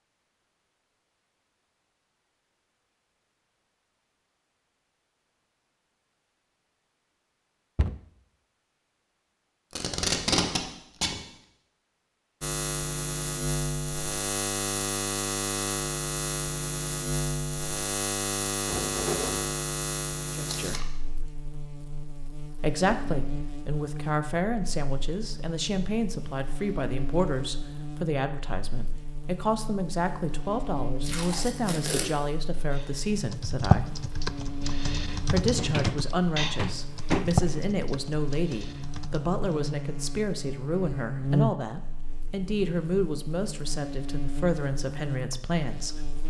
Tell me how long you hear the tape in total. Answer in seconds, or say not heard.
3 s.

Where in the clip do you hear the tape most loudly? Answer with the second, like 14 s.
10 s.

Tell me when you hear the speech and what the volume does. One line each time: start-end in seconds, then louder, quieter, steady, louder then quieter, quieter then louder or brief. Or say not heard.
20.3-20.9 brief
22.6-34.0 steady
35.3-46.1 steady.